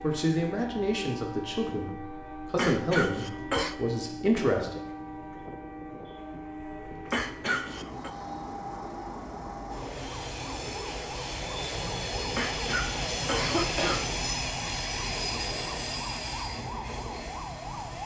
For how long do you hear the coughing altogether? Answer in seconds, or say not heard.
4 s.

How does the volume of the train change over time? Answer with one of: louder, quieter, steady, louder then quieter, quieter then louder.
louder.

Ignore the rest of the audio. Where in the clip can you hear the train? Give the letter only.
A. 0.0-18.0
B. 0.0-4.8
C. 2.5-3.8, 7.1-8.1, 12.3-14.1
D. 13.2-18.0
A.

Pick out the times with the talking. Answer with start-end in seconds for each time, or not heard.
0.0-4.8.